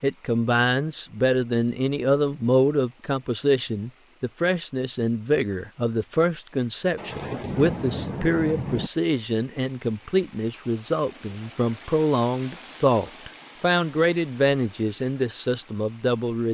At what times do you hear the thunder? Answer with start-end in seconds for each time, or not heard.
7.0-8.9.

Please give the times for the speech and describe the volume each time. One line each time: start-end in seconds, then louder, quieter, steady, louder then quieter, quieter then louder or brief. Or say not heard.
0.0-16.4 steady.